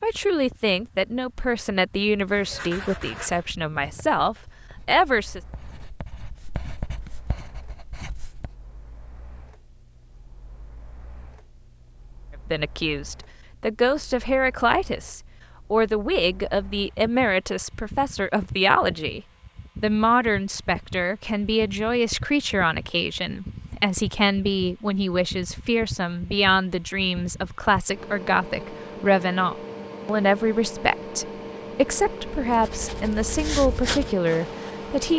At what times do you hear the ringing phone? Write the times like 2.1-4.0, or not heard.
not heard.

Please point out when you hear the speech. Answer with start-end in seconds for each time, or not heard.
0.0-5.4, 12.5-19.2, 19.8-35.1.